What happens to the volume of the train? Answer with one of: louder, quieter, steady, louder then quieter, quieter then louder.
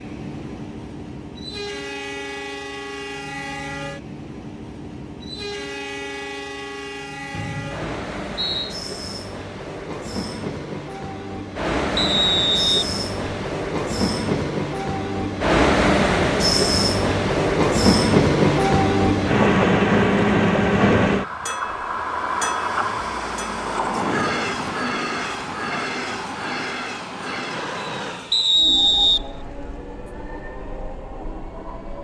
louder then quieter.